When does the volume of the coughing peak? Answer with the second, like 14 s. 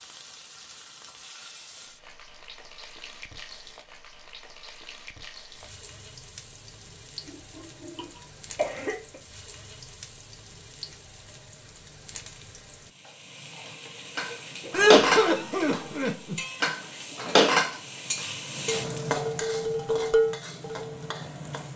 15 s.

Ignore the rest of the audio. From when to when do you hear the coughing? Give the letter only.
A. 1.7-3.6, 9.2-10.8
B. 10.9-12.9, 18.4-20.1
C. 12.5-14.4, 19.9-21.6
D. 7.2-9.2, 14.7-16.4
D.